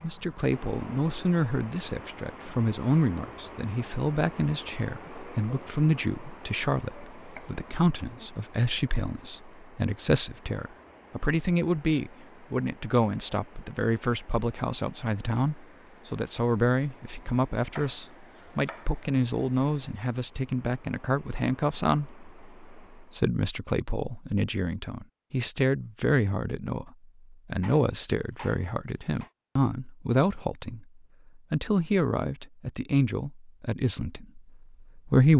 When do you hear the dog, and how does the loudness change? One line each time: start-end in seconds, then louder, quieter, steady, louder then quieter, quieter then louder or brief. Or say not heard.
not heard.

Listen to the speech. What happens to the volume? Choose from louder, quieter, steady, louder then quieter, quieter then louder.
steady.